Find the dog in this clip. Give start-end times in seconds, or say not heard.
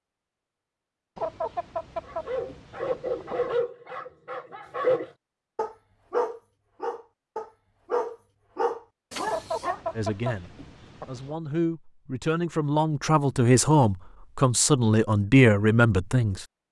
2.0-9.9.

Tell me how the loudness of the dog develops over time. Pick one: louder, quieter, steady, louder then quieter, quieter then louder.
steady.